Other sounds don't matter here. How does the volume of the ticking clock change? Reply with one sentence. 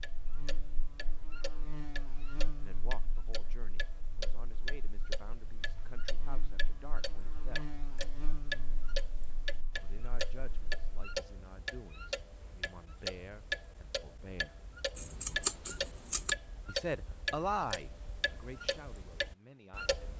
The loudness of the ticking clock goes up.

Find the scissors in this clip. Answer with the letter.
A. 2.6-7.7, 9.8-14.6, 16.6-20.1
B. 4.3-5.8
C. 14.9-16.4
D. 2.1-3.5
C.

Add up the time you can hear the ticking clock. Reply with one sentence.
You can hear the ticking clock for 20 seconds altogether.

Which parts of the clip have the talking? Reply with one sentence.
You can hear the talking from 2.6 to 7.7 s, from 9.8 to 14.6 s and from 16.6 to 20.1 s.